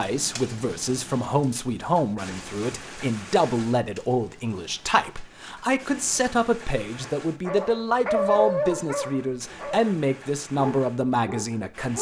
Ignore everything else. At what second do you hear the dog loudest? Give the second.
8 s.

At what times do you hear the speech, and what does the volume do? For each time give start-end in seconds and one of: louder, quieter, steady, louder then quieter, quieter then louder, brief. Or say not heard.
0.0-11.9 steady.